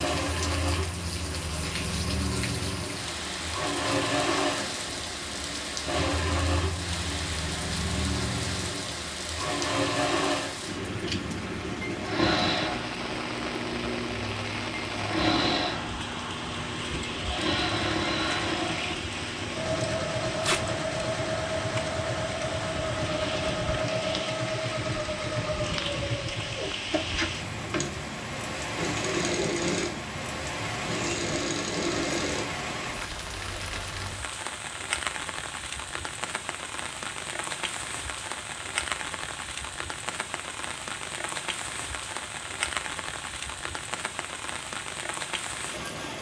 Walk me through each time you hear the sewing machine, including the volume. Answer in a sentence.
You can hear the sewing machine from 0.0 to 32.5 s, at a steady volume.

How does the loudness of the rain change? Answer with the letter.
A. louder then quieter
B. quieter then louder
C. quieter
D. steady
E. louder
D.